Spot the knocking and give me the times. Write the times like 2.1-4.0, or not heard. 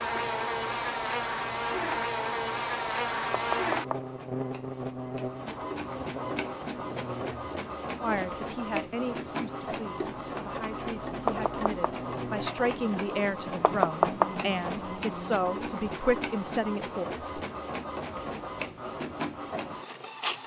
3.3-4.0, 11.2-11.9, 13.6-14.3.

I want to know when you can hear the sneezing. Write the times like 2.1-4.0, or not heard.
not heard.